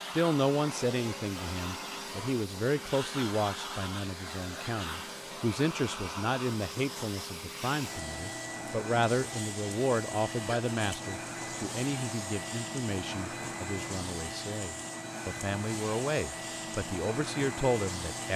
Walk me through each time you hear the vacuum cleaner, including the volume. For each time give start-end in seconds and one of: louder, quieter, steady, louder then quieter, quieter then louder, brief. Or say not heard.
0.0-18.3 steady.